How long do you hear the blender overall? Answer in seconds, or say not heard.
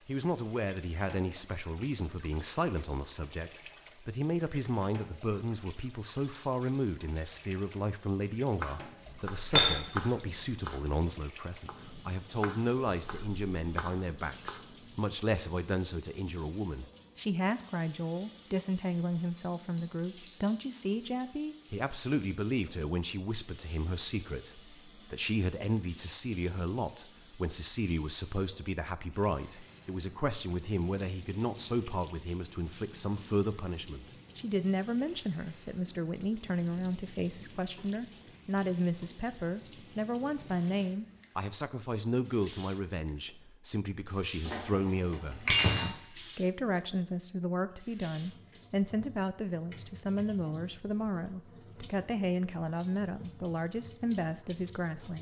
not heard.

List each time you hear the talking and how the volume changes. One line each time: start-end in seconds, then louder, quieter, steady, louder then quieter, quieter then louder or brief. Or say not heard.
0.1-55.1 steady.